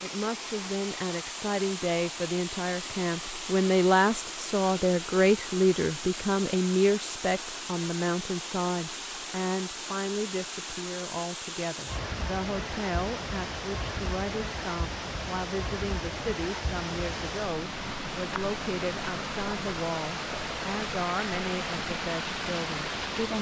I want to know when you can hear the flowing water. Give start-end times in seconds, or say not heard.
0.0-23.3.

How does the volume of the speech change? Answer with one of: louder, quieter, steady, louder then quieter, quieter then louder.
quieter.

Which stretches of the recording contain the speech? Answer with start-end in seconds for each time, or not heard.
0.0-23.3.